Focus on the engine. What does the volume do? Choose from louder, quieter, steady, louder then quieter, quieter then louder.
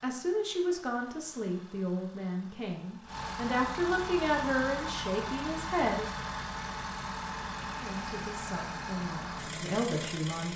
louder.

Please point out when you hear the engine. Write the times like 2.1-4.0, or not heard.
0.0-10.5.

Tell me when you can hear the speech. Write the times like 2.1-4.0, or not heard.
0.0-6.1, 7.8-10.5.